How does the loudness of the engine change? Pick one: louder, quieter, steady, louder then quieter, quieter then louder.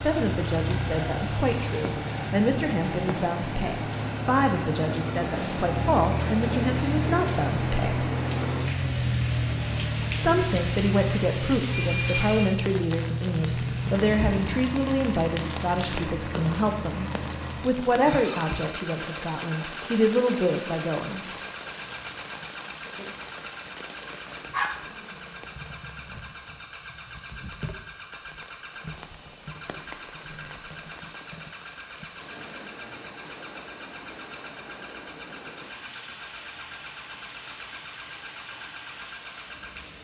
quieter.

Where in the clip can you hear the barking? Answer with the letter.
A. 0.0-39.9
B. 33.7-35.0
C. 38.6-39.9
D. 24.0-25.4
D.